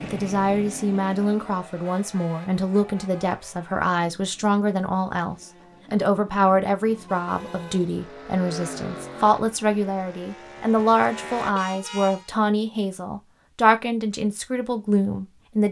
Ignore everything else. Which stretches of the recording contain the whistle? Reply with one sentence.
The whistle can't be heard in this clip.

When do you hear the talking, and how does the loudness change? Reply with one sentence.
You can hear the talking from 0.0 to 15.6 s, at a steady volume.